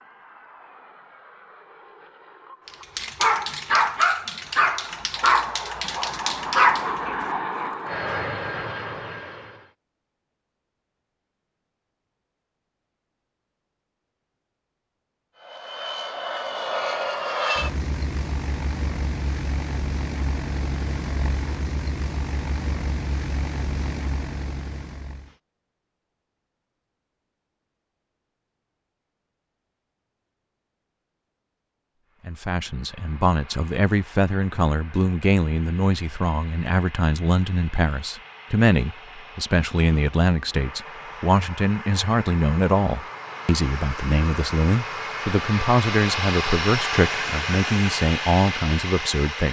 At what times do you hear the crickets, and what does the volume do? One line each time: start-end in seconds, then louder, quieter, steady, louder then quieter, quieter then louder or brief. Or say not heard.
not heard.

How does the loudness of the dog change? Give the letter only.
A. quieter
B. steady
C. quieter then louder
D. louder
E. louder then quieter
C.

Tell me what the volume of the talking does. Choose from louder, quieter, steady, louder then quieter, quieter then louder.
steady.